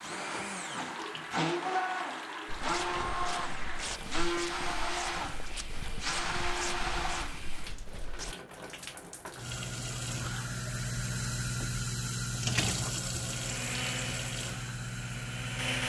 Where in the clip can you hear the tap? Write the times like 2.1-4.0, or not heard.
0.0-15.8.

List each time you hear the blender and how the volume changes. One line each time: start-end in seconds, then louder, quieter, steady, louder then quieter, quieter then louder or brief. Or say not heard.
0.0-7.5 steady
13.2-15.8 brief.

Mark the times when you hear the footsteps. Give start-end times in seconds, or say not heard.
2.5-8.3.